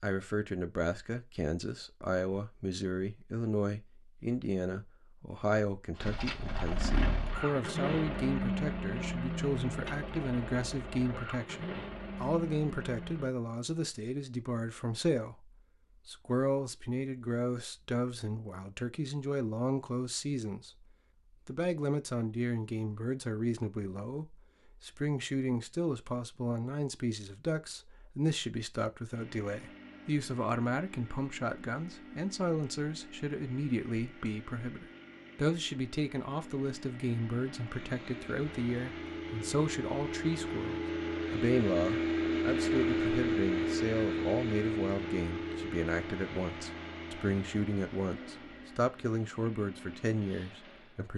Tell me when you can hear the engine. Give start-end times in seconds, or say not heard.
6.0-13.3, 29.1-51.1.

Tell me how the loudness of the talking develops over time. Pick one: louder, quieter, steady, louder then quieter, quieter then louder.
steady.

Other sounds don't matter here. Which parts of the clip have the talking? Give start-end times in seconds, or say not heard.
0.0-20.9, 21.4-51.1.